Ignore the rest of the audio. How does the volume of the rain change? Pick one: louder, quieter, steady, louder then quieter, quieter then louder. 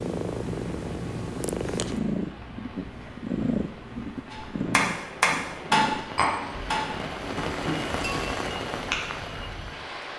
louder.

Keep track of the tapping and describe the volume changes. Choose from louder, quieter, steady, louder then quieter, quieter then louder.
quieter.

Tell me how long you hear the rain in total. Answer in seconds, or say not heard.
10 s.